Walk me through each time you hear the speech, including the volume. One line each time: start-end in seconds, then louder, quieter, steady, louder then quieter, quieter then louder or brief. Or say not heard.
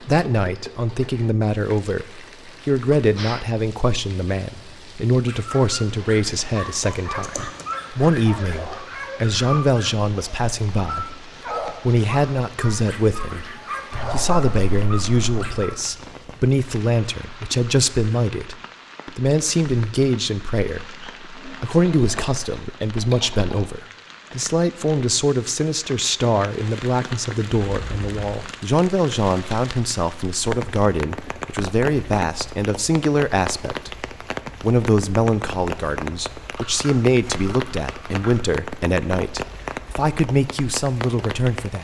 0.0-41.7 steady.